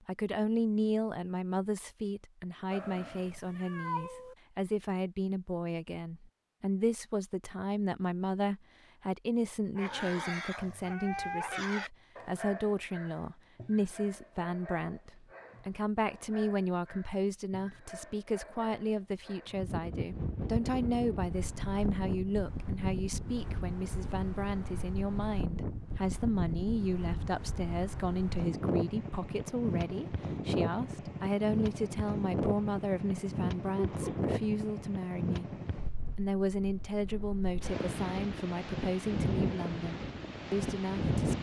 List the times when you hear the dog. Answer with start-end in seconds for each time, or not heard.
9.8-19.7.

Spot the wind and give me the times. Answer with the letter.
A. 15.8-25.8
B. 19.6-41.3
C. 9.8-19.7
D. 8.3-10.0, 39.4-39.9
B.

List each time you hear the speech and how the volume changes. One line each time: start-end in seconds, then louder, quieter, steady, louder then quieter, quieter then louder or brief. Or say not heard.
0.1-41.3 steady.